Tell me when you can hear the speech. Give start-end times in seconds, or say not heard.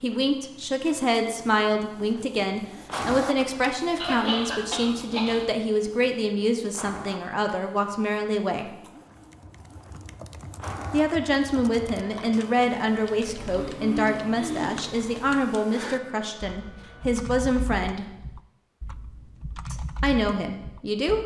0.0-8.8, 10.9-18.1, 19.7-21.2.